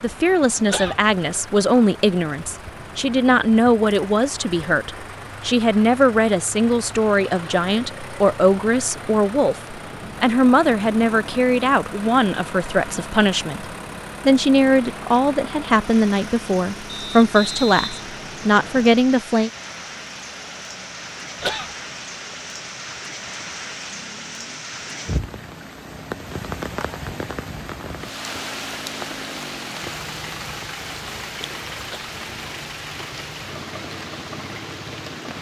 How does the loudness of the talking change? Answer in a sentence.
The volume of the talking stays about the same.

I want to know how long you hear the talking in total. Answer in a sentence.
The talking can be heard for 19 seconds in total.